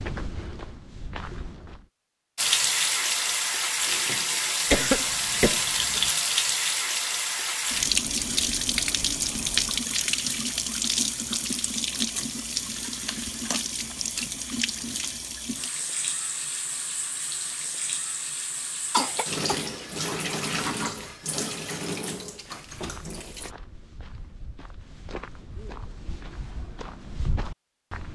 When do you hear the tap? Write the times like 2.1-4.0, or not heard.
2.4-23.5.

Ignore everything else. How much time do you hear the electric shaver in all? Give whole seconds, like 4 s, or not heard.
not heard.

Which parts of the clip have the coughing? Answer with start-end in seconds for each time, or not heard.
4.7-6.1, 13.1-13.6, 18.9-20.2.